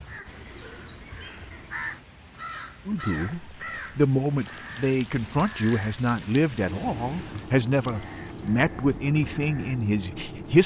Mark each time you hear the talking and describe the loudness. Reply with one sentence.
The talking can be heard from 2.9 to 10.6 s, at a steady volume.